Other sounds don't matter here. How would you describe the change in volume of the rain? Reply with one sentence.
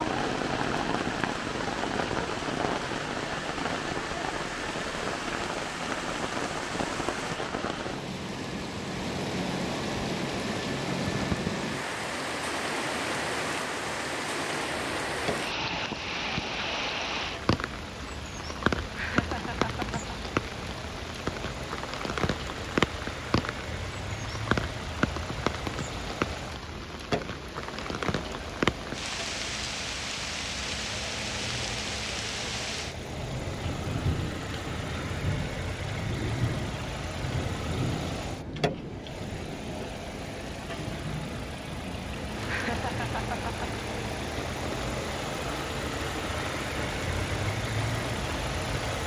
The volume of the rain goes down.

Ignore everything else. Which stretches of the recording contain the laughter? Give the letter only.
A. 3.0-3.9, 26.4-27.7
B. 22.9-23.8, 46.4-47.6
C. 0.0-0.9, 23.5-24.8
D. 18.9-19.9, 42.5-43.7
D.